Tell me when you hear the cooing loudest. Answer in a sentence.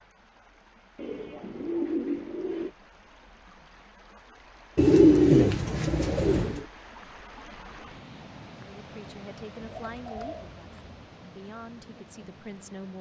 The volume of the cooing peaks at 5 seconds.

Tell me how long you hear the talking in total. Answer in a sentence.
The talking can be heard for 4 seconds in total.